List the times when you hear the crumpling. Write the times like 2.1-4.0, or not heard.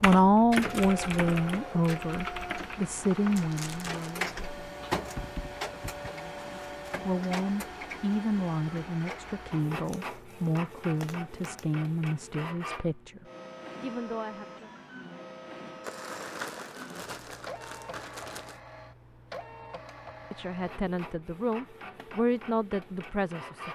3.4-4.2, 9.8-11.7, 15.8-18.6.